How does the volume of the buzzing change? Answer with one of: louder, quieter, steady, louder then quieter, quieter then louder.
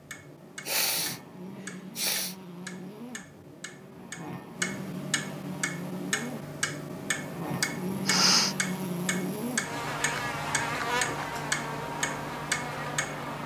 louder.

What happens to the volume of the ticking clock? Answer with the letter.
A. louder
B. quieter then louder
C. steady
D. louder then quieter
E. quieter
A.